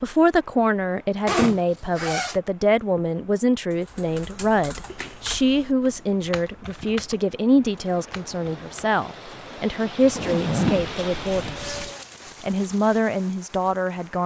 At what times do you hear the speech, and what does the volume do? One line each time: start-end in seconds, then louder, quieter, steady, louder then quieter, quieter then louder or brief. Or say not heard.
0.0-11.8 steady
12.4-14.2 brief.